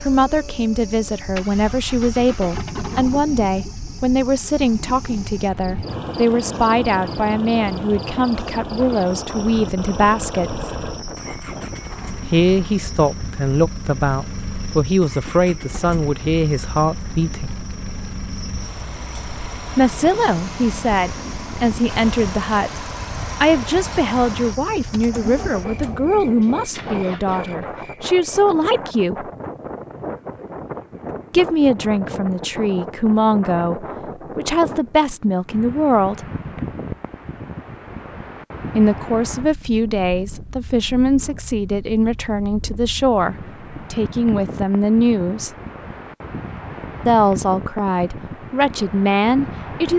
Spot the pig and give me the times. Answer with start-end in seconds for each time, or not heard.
not heard.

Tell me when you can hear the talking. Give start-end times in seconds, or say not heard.
0.1-10.7, 12.2-17.6, 19.8-29.2, 31.3-36.2, 38.8-45.5, 47.0-49.9.